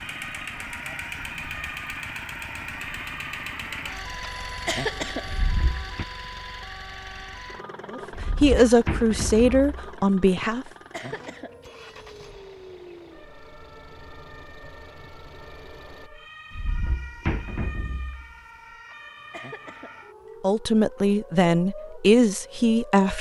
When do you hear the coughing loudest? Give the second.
5 s.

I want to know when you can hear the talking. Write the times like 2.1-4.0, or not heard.
7.9-10.7, 20.4-23.1.